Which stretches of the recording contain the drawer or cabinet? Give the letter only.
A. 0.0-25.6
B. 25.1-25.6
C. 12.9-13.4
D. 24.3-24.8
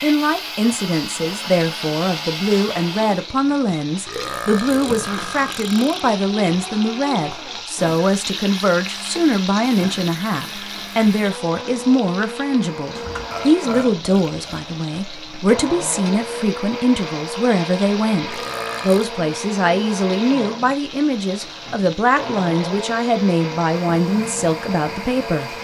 C.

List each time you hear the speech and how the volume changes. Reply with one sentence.
You can hear the speech from 0.0 to 25.6 s, at a steady volume.